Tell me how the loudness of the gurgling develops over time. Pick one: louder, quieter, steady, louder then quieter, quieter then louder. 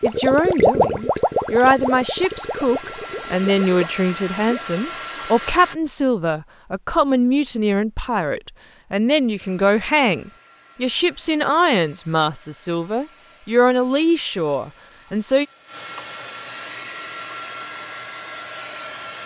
quieter.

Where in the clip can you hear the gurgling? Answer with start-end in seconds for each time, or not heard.
0.0-4.5.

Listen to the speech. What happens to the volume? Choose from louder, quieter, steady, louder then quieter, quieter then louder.
steady.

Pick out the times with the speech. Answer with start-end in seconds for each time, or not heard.
0.0-15.4.